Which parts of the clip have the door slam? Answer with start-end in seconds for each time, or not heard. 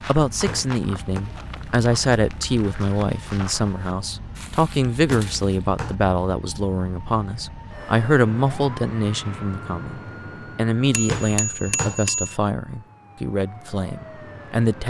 0.5-1.2, 5.0-6.0, 11.1-11.9.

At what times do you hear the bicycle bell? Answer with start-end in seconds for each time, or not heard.
10.9-12.3.